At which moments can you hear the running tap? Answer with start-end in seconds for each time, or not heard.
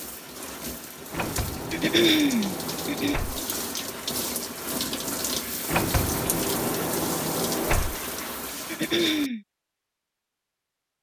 0.0-9.3.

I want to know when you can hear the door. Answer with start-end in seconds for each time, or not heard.
1.1-3.4, 5.7-8.0.